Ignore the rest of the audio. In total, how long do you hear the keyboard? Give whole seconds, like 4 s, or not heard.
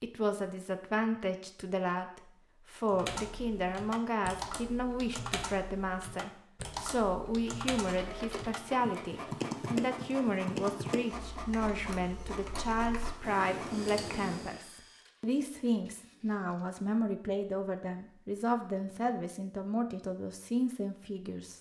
12 s.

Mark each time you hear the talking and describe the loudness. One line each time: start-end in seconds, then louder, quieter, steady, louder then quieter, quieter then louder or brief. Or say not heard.
0.0-21.5 steady.